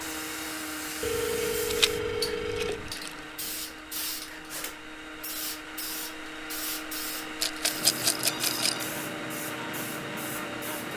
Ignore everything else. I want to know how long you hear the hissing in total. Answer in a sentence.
The hissing can be heard for 11 seconds in total.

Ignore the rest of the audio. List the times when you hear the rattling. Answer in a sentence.
The rattling can be heard from 1.6 to 3.2 s and from 7.4 to 8.8 s.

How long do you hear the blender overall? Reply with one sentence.
The blender can be heard for 11 seconds in total.